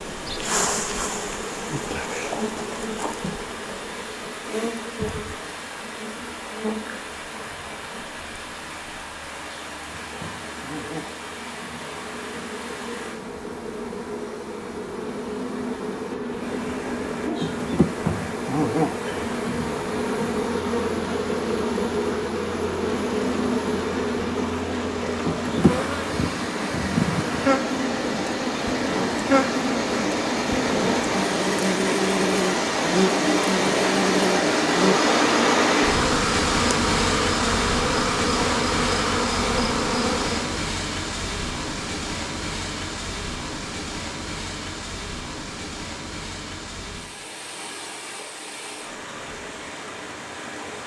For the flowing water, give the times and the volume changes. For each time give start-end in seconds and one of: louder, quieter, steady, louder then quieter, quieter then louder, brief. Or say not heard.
0.0-50.8 louder then quieter.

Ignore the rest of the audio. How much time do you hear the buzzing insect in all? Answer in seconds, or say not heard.
41 s.